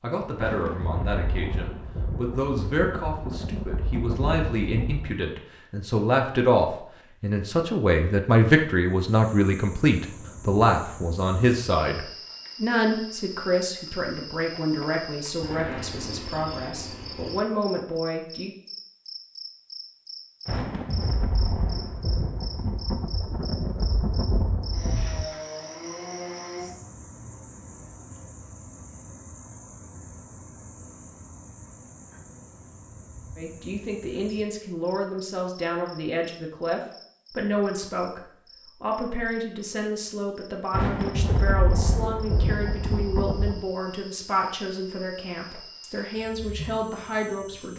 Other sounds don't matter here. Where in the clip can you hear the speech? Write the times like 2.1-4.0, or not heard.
0.0-18.5, 33.4-47.7.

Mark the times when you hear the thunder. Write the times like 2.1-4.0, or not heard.
0.3-5.2, 20.4-25.2, 40.7-43.6.